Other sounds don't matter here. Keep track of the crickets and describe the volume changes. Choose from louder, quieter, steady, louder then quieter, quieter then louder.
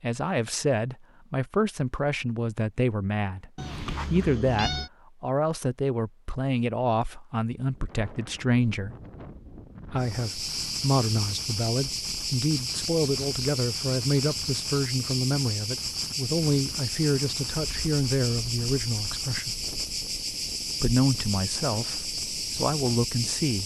steady.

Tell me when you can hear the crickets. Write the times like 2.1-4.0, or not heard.
9.9-23.6.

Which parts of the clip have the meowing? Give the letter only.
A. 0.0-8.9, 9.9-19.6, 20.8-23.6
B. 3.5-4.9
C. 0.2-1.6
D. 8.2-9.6
B.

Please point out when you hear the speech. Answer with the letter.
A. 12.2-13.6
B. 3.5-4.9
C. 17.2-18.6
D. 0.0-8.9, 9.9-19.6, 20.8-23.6
D.